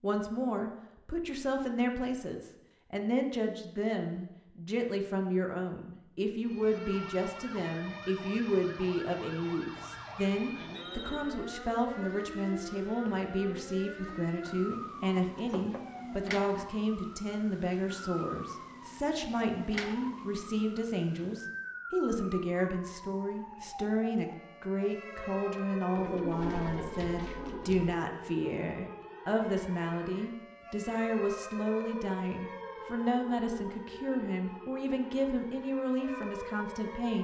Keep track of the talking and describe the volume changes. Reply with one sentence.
The loudness of the talking stays about the same.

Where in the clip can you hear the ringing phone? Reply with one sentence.
The ringing phone can be heard from 10.6 to 11.3 s.